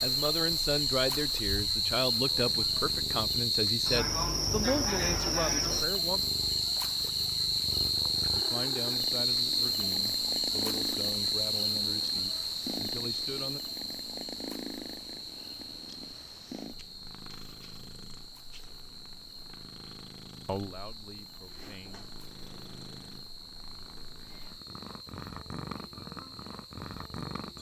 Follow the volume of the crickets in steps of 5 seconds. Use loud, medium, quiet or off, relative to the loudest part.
loud, loud, loud, quiet, quiet, quiet.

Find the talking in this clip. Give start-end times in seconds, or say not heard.
0.0-6.2, 8.3-13.6, 20.4-22.1.